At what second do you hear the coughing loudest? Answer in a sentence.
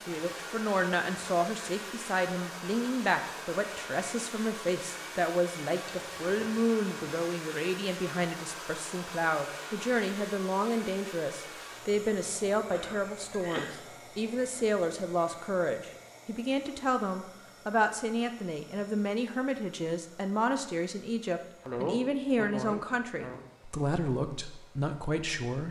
The loudest moment of the coughing is at 22 seconds.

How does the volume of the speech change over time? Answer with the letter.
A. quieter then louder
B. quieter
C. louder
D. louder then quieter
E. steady
E.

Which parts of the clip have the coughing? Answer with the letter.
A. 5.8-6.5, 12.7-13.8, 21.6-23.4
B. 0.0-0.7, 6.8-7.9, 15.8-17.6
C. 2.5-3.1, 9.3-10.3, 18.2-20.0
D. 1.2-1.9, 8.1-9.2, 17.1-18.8
A.